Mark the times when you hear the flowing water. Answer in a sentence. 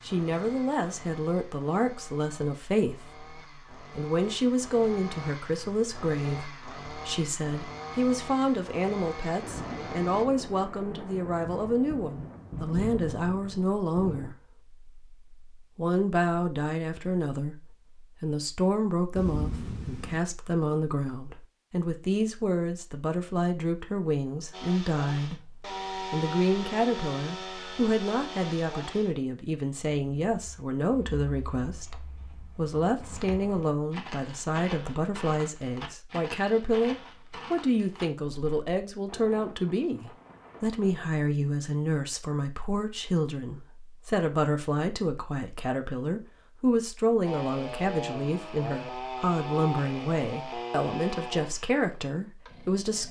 You can't hear the flowing water here.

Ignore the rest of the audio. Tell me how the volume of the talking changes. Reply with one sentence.
The loudness of the talking stays about the same.